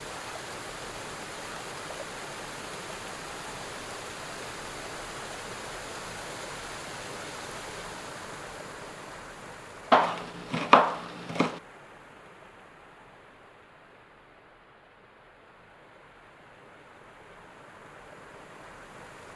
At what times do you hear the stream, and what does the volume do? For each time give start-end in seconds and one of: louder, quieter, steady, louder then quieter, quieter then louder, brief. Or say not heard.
0.0-19.3 quieter.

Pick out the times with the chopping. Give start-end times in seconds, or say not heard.
9.9-11.6.